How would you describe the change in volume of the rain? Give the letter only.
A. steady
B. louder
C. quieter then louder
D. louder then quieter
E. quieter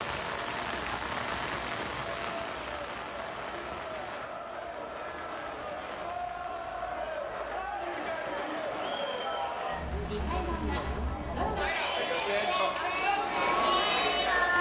E.